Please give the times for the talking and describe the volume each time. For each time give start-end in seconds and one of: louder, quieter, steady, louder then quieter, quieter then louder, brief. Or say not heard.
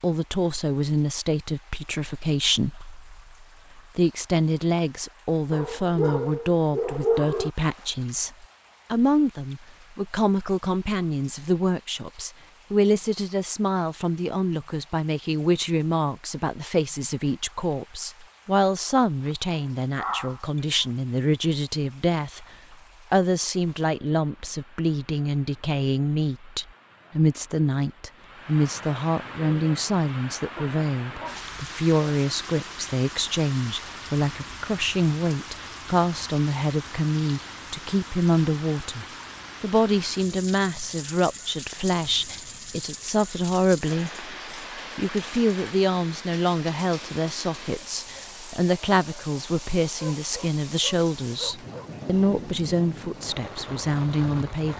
0.0-22.4 steady
23.1-44.2 steady
45.0-54.7 steady.